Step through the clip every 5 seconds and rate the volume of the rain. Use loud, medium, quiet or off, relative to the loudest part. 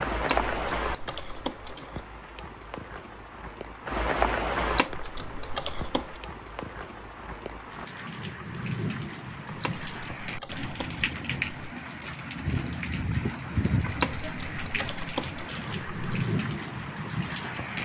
loud, medium, loud, loud.